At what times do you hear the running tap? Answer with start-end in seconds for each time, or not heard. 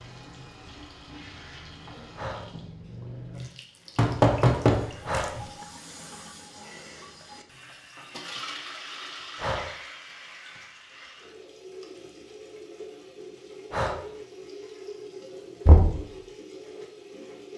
0.0-17.5.